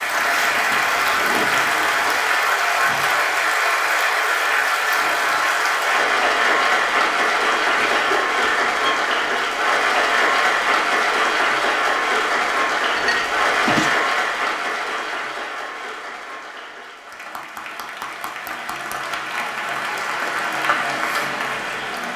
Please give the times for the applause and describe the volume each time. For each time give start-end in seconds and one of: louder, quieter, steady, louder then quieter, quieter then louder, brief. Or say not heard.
0.0-22.1 quieter.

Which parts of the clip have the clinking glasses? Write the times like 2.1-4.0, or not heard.
12.9-13.9.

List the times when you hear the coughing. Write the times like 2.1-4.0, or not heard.
7.8-9.1.